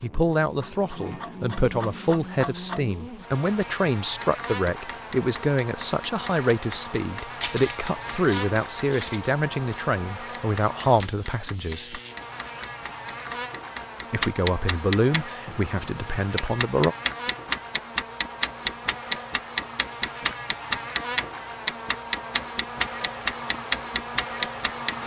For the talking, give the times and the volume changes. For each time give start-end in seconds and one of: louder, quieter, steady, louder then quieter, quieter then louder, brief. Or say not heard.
0.0-12.0 steady
14.1-16.9 brief.